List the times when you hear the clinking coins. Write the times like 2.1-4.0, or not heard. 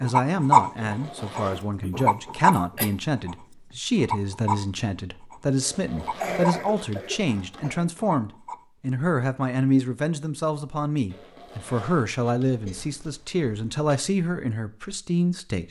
not heard.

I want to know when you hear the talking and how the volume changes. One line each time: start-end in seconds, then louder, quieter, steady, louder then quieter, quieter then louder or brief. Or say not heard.
0.0-15.6 steady.